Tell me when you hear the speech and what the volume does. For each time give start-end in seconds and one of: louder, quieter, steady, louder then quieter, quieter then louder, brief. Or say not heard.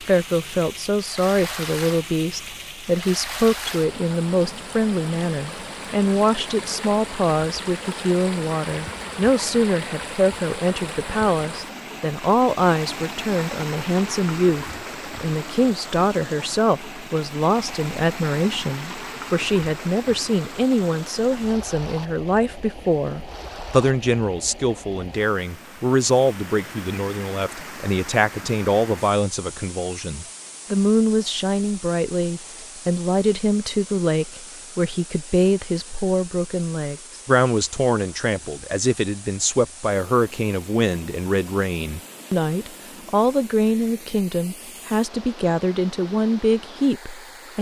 0.0-47.5 steady.